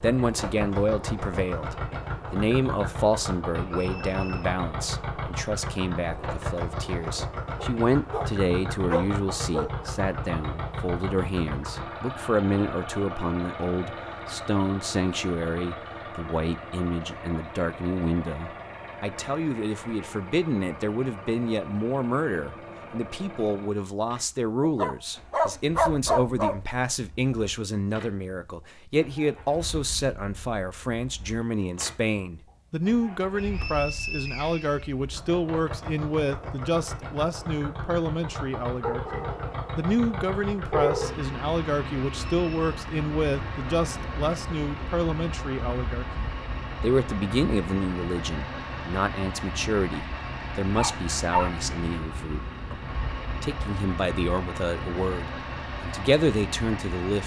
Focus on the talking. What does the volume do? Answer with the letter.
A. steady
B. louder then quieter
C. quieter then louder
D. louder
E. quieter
A.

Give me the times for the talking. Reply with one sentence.
The talking can be heard from 0.0 to 52.8 s and from 53.4 to 57.2 s.